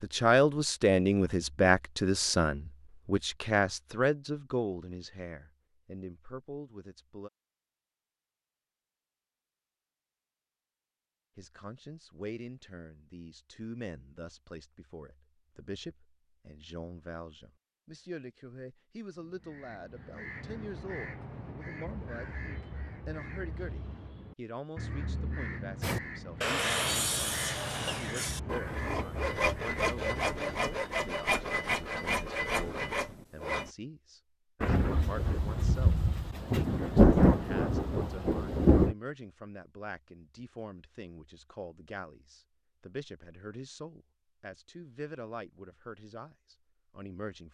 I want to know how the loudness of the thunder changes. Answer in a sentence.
The volume of the thunder goes up, then down.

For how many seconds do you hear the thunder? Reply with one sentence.
The thunder can be heard for 4 seconds in total.